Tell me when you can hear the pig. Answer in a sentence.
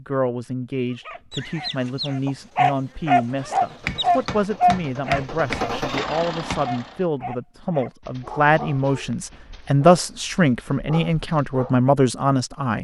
The pig can't be heard in this clip.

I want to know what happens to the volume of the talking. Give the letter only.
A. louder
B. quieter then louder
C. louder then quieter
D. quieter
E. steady
A.